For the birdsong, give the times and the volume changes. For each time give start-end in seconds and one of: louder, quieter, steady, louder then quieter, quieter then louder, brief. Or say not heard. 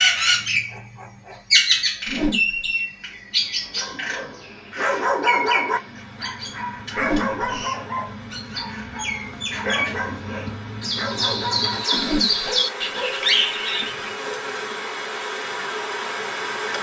0.0-14.1 quieter then louder.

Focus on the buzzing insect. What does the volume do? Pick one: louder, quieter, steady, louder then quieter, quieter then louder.
louder.